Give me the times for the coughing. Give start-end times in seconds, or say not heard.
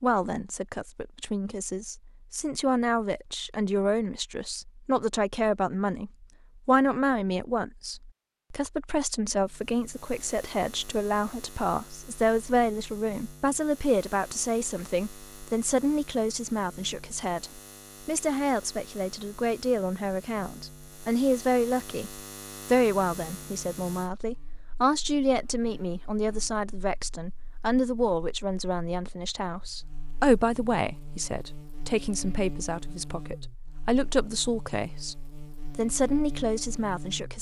not heard.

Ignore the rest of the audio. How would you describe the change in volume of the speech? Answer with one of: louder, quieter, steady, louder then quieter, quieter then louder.
steady.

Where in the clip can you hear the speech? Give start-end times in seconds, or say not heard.
0.0-37.3.